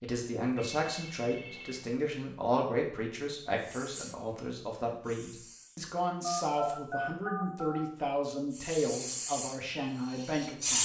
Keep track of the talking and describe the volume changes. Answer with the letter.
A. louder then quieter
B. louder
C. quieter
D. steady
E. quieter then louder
D.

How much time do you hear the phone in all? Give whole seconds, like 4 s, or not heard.
3 s.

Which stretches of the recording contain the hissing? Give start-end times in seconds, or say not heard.
3.6-4.2, 5.0-5.8, 8.6-10.8.